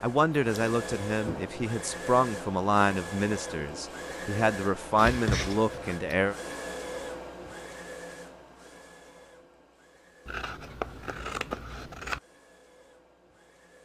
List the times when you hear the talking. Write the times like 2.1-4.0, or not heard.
0.0-6.3.